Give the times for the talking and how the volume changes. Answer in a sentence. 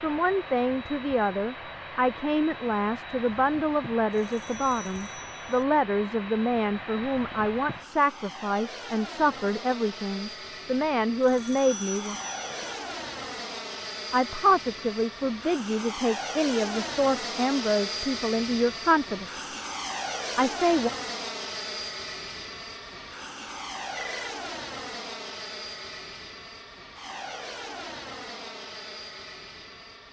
The talking can be heard from 0.0 to 12.2 s, at a steady volume; from 14.1 to 19.4 s, at a steady volume; and briefly from 20.4 to 20.9 s.